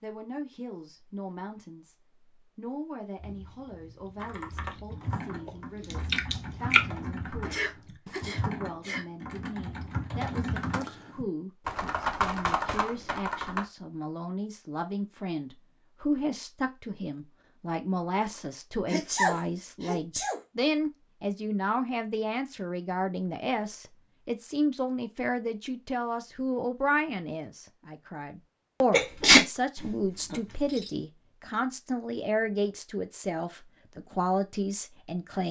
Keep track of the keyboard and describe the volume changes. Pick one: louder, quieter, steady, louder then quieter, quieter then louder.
louder.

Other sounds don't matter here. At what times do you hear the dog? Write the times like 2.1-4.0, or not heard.
not heard.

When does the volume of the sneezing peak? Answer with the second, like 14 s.
29 s.